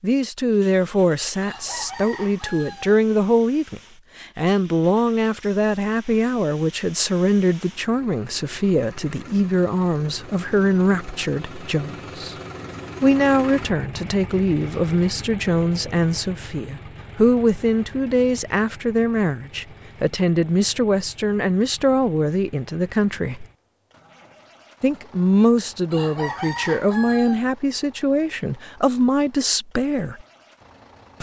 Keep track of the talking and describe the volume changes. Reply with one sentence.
The volume of the talking stays about the same.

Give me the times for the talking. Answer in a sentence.
The talking can be heard from 0.0 to 12.3 s, from 13.0 to 23.4 s and from 24.8 to 30.2 s.